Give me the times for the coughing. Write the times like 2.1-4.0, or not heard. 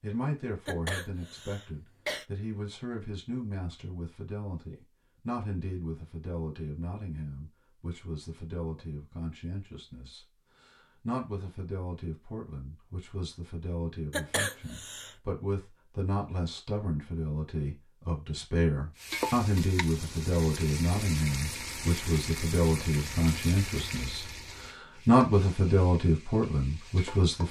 0.7-2.2, 14.1-15.2.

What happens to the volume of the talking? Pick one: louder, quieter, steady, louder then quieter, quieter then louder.
louder.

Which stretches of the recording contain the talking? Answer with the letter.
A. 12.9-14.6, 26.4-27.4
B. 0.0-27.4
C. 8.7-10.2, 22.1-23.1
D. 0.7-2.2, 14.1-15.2
B.